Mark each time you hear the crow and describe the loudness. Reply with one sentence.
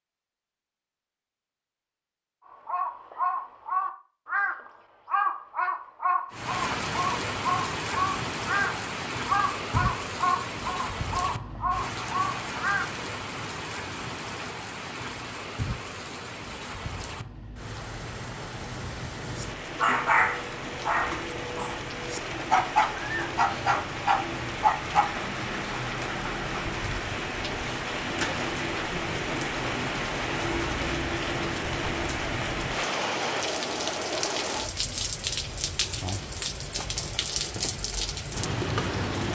You can hear the crow from 2.5 to 13.0 s, at a steady volume.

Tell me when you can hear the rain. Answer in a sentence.
The rain can be heard from 6.3 to 39.3 s.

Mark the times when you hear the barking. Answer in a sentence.
The barking can be heard from 19.4 to 25.1 s.